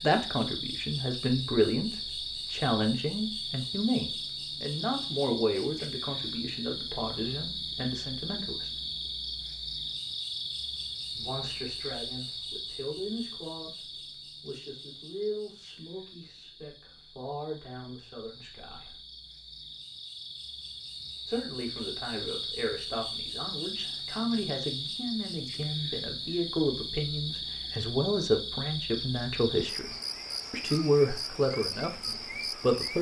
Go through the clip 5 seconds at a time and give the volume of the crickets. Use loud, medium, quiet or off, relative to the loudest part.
loud, loud, loud, quiet, loud, loud, loud.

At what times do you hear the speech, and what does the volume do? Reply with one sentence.
You can hear the speech from 0.0 to 8.7 s, getting quieter; from 11.2 to 19.0 s, getting quieter then louder; from 21.2 to 29.9 s, getting louder; and briefly from 30.5 to 32.9 s.